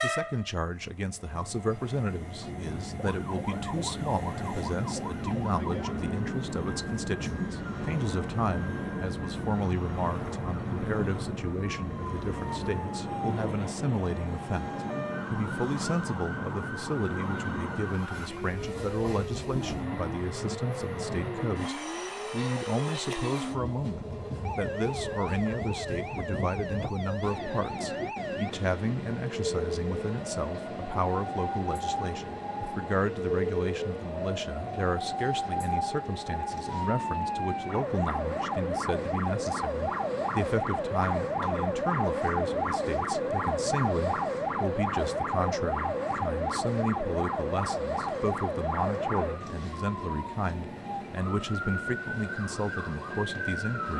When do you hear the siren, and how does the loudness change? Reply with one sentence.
You can hear the siren from 2.4 to 53.9 s, getting louder.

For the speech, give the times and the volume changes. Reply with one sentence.
The speech can be heard from 0.0 to 53.9 s, at a steady volume.